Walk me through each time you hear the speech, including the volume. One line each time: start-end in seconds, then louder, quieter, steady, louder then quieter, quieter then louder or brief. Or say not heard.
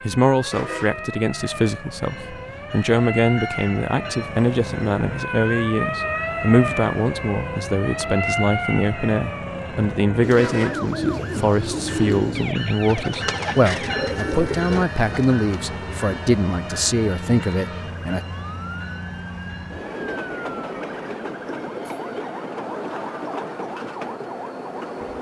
0.1-18.2 steady.